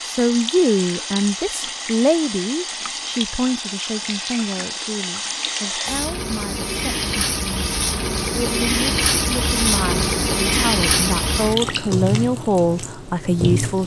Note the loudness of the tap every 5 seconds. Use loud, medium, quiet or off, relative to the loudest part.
medium, loud, loud.